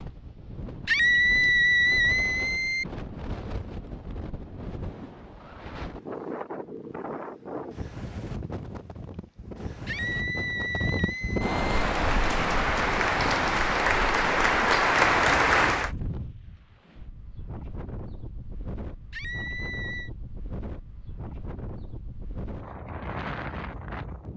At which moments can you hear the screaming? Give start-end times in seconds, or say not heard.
0.8-2.9, 9.8-11.8, 19.1-20.1.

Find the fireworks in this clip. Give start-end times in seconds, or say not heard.
not heard.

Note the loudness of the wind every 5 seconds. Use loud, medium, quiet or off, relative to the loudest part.
medium, medium, loud, medium, medium.